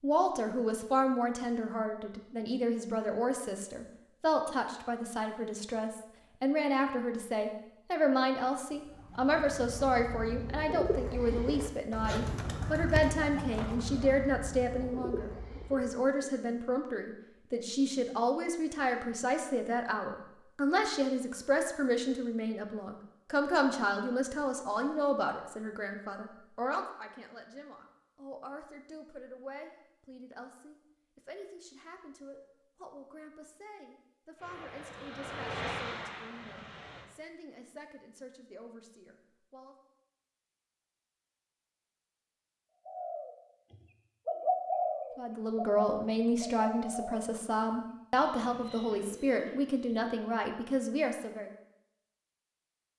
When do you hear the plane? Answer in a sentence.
The plane can be heard from 34.4 to 37.1 s.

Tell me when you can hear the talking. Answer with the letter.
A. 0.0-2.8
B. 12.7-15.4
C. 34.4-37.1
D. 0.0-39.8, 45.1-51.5
D.